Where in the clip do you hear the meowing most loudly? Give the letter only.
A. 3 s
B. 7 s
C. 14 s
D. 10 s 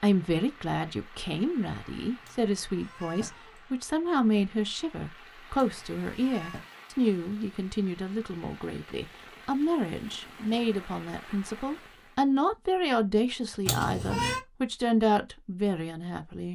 C.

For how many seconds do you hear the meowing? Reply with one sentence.
The meowing can be heard for 3 seconds in total.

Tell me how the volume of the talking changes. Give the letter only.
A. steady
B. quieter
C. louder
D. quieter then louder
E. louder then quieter
A.